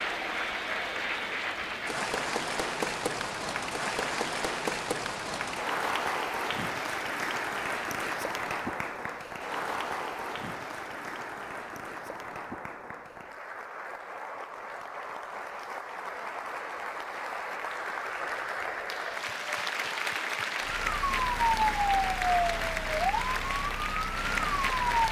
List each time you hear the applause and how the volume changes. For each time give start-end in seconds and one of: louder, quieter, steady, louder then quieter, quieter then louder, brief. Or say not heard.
0.0-25.0 quieter then louder.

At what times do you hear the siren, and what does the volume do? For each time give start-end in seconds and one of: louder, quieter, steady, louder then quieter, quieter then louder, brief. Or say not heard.
20.6-25.0 quieter.